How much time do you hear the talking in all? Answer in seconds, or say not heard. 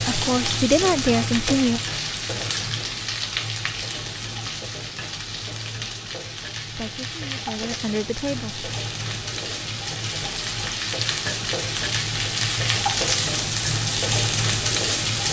4 s.